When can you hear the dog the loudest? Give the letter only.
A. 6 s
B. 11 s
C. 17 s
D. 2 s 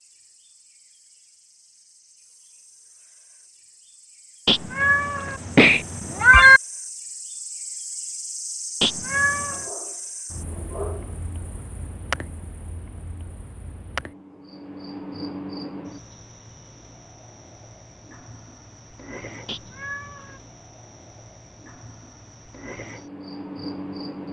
B.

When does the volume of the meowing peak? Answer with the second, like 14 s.
6 s.